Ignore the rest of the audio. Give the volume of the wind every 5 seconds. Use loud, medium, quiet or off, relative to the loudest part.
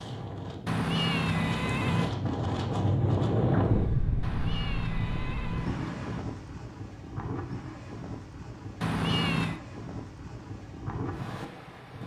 loud, medium, medium.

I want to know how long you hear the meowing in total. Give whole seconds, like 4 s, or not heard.
4 s.